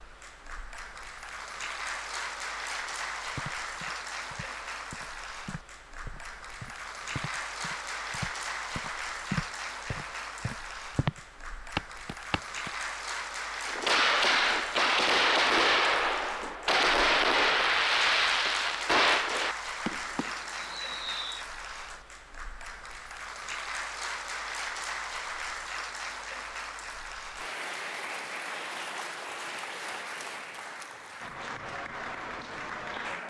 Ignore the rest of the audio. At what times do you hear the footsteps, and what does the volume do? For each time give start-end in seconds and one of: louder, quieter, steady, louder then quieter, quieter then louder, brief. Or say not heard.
3.4-12.7 louder.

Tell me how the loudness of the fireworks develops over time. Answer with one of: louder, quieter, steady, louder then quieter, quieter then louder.
quieter.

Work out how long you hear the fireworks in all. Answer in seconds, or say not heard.
8 s.